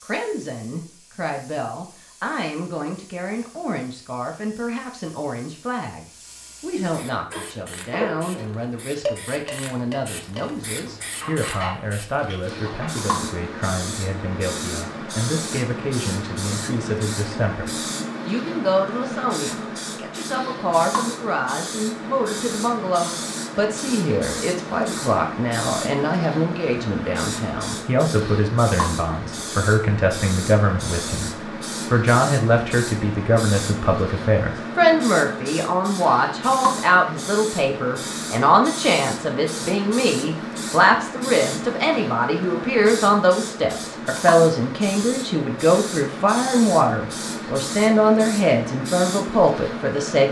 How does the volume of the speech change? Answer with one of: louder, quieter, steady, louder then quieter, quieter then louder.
louder.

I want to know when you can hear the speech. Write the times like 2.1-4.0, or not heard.
0.0-50.2.